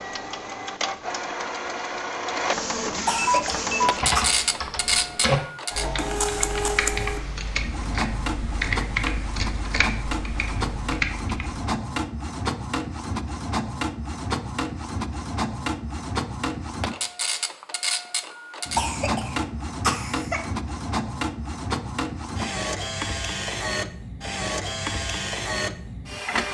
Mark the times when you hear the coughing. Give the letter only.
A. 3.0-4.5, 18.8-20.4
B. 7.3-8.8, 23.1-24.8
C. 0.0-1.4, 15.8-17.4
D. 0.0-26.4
A.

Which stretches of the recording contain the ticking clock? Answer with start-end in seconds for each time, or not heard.
not heard.